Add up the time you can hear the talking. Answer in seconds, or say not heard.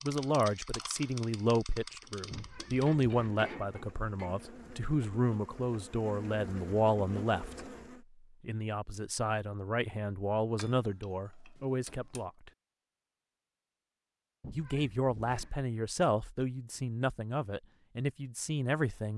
16 s.